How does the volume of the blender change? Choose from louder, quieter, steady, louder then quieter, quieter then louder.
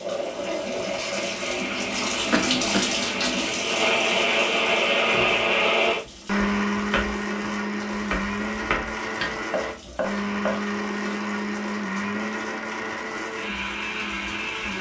louder then quieter.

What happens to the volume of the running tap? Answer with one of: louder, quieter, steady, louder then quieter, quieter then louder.
quieter.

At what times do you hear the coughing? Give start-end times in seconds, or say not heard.
2.3-2.9.